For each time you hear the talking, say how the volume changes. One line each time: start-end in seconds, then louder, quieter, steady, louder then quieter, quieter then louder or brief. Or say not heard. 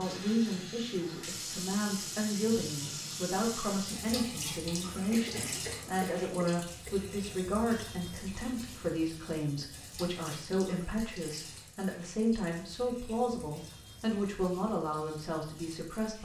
0.0-16.2 steady.